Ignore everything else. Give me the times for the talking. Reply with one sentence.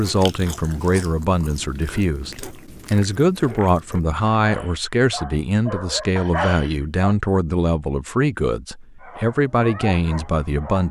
You can hear the talking from 0.0 to 10.8 s.